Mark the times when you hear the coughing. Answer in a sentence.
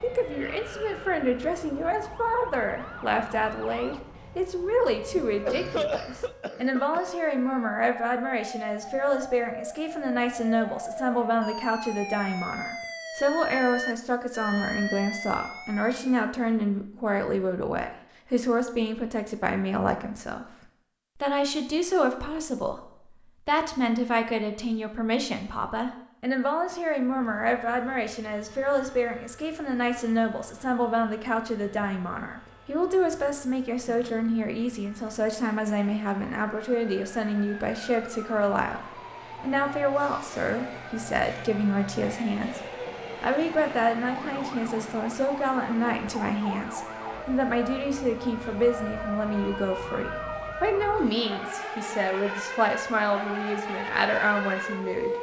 The coughing can be heard from 5.2 to 7.0 s.